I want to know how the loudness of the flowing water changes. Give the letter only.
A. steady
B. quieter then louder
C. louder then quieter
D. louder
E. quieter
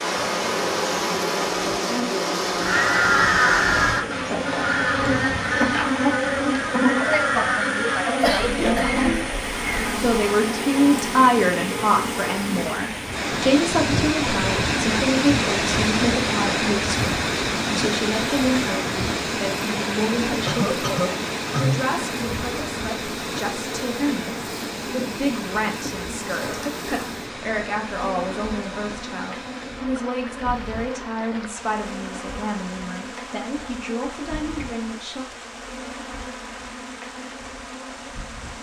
C.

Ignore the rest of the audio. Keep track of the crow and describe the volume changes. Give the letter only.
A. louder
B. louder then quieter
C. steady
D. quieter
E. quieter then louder
D.